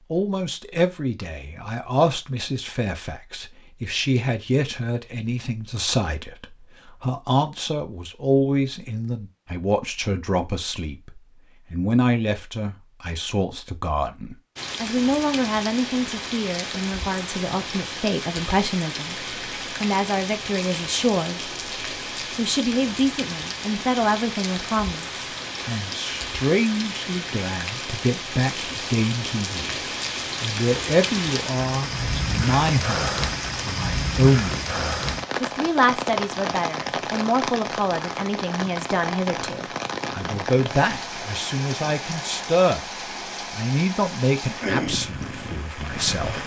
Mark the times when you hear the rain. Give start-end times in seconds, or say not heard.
14.6-46.4.